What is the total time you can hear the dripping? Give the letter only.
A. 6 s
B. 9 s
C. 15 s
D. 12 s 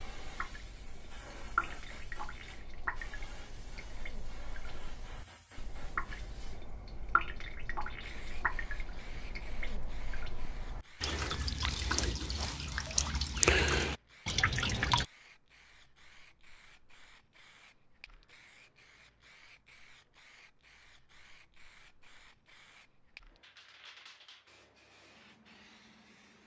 C.